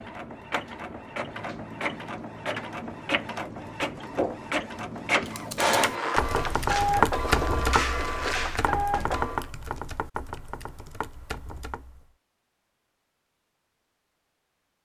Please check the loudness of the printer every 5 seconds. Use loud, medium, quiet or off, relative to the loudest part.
medium, loud, off.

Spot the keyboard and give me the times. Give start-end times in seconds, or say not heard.
5.2-12.1.